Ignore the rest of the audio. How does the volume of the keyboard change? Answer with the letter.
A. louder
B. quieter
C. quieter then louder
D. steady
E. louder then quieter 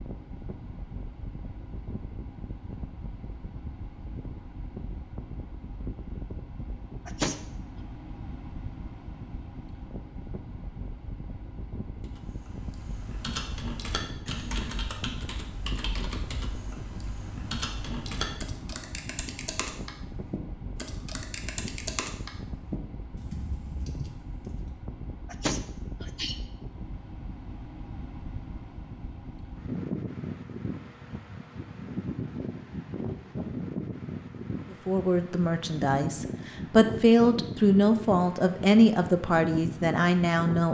D.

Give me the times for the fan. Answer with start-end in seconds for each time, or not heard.
0.0-40.7.